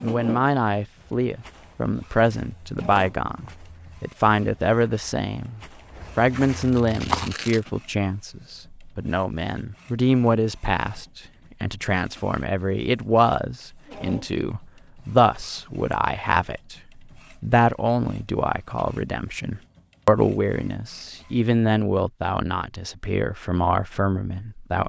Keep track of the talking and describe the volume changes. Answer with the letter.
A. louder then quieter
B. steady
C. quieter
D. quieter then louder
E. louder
B.